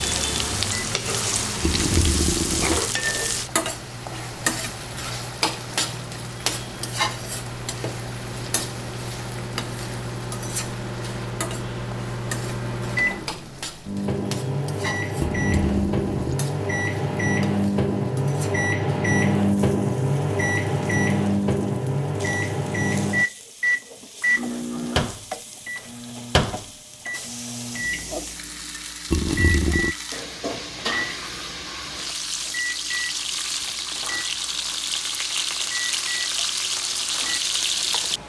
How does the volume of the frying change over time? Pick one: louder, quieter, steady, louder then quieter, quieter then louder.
quieter then louder.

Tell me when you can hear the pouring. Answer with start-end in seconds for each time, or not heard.
1.6-2.8, 15.2-16.4, 29.1-29.9.